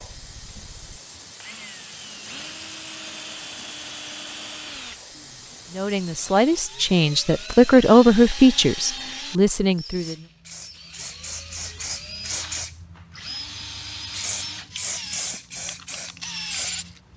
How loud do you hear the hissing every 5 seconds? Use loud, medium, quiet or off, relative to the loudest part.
medium, medium, loud, loud.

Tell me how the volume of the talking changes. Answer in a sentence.
The loudness of the talking goes up, then down.